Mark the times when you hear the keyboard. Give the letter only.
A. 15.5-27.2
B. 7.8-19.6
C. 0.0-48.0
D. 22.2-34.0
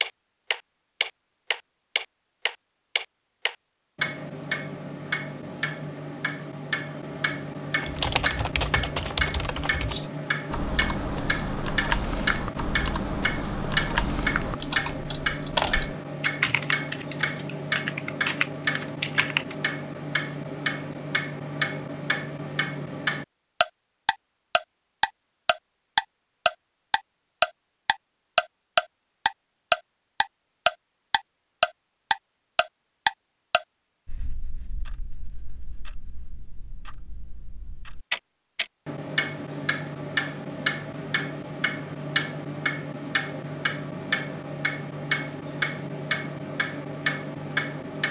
B.